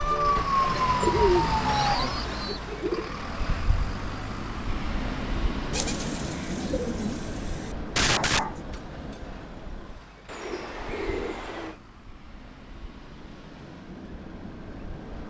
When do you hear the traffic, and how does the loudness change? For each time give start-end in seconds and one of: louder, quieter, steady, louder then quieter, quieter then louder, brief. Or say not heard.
0.0-15.2 quieter.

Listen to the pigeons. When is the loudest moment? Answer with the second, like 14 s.
1 s.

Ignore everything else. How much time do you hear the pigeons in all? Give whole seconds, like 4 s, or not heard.
6 s.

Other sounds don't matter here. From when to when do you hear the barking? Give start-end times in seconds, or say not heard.
8.0-8.6.